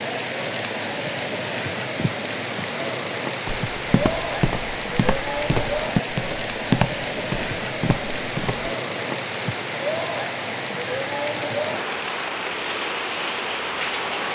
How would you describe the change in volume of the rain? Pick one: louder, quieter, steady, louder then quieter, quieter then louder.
steady.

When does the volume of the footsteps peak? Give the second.
7 s.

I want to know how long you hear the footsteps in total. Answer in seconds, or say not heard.
5 s.